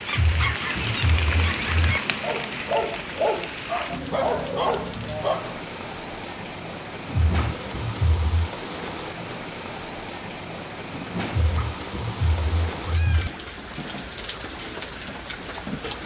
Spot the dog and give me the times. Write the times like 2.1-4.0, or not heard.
0.1-5.6.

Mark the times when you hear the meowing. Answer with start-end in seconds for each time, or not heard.
0.1-2.0, 7.1-8.5, 11.3-13.3.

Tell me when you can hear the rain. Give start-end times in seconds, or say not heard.
0.0-16.0.